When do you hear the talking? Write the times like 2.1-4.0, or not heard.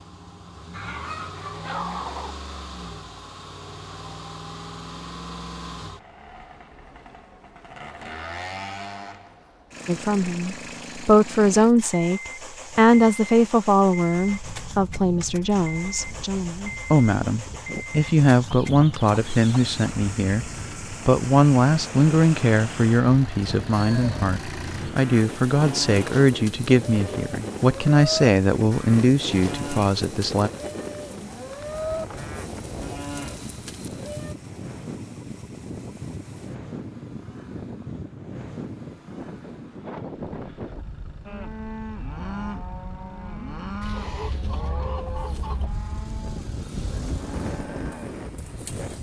9.8-30.5.